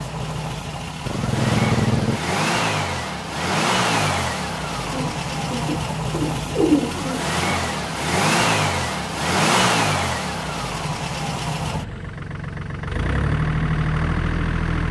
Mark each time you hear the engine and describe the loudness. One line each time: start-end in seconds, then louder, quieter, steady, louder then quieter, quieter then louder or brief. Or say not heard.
0.0-14.8 steady.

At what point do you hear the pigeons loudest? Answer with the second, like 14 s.
7 s.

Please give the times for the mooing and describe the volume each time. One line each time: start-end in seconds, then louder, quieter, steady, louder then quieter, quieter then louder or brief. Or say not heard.
not heard.